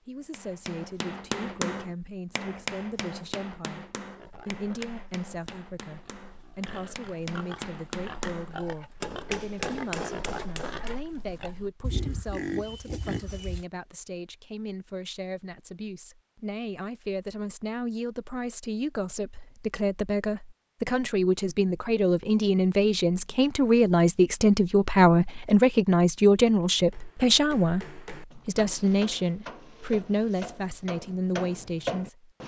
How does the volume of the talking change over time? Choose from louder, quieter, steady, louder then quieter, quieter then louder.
louder.